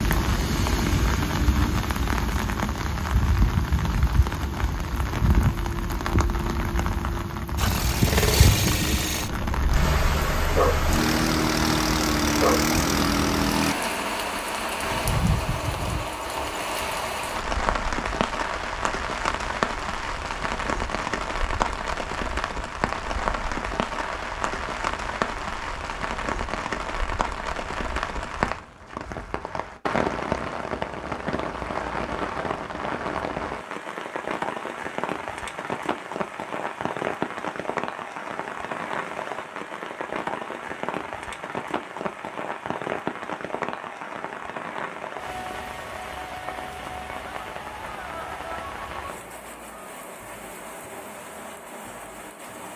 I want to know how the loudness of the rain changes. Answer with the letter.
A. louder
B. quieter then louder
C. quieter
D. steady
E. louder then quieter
C.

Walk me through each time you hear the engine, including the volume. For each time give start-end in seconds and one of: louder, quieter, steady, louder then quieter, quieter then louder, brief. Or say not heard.
7.5-13.8 quieter then louder.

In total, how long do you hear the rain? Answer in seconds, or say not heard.
53 s.